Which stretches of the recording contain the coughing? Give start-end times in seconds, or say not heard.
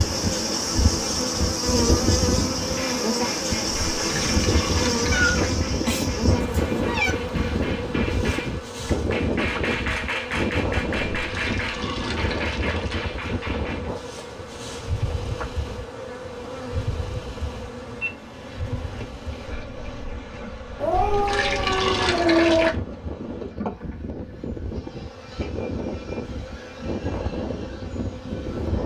not heard.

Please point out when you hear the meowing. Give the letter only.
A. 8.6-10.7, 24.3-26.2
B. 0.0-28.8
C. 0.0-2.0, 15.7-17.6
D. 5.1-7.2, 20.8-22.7
D.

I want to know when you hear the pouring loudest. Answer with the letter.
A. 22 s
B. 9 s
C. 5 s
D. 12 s
A.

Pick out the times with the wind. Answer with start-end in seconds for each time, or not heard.
0.0-28.8.